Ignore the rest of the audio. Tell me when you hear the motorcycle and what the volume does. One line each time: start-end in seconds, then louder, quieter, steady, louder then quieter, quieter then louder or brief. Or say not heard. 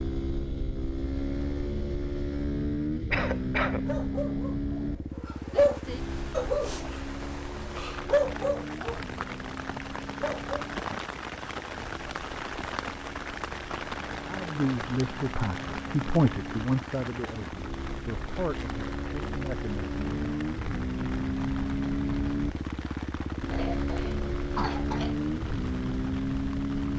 0.0-26.9 quieter then louder.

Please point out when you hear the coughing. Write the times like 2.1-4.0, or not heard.
3.1-3.9, 23.5-25.1.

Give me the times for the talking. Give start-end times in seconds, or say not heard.
14.2-20.4.